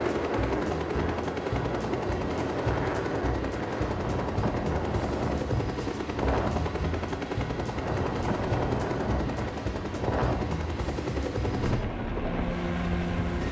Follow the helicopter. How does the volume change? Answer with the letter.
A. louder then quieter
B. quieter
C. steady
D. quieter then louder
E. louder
C.